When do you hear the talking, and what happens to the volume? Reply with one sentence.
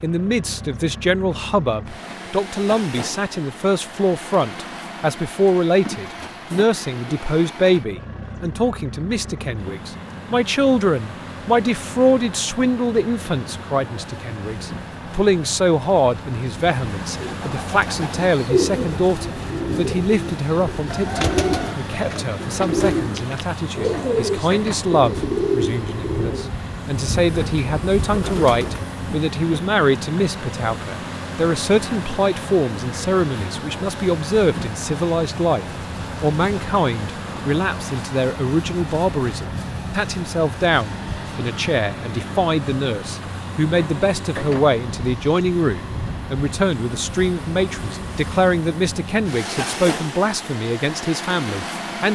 The talking can be heard from 0.0 to 52.0 s, at a steady volume.